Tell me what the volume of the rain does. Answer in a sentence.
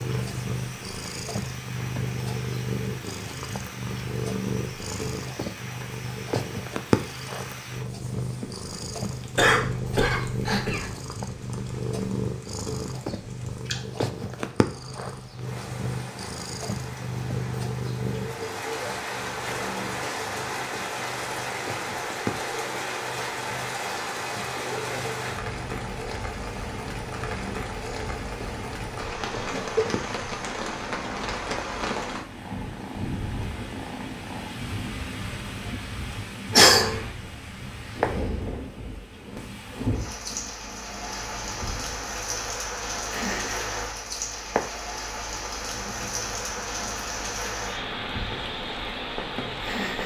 The volume of the rain goes up.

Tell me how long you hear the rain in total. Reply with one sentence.
The rain can be heard for 50 seconds in total.